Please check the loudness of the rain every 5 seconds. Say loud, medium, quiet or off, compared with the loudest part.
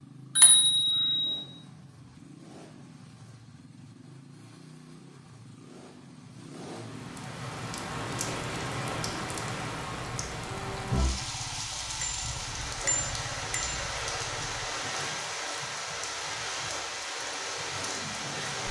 off, loud, loud, loud.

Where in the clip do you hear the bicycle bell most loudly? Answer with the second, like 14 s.
1 s.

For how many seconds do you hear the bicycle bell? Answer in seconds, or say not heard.
3 s.